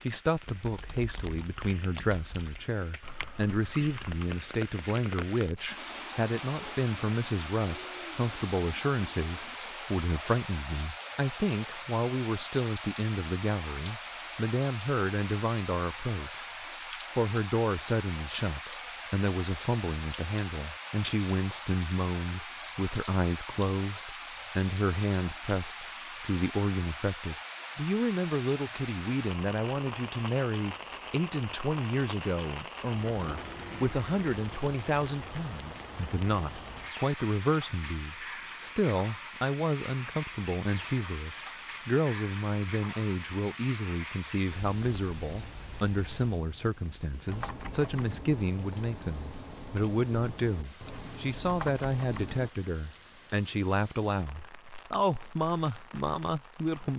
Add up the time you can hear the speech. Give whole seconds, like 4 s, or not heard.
56 s.